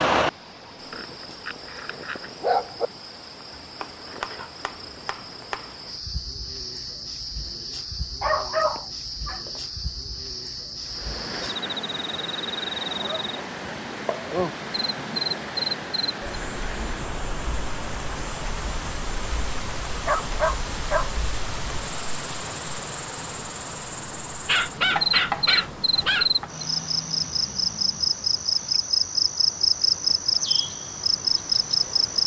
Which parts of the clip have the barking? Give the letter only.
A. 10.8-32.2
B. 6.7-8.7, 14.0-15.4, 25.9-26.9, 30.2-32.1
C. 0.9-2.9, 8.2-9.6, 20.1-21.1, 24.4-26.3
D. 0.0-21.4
C.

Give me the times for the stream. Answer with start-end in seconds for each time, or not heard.
10.8-32.2.